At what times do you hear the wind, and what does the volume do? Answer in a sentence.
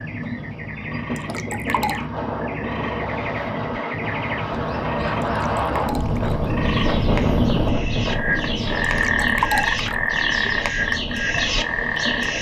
You can hear the wind from 0.0 to 12.3 s, getting louder then quieter.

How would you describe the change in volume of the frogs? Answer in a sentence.
The volume of the frogs goes up.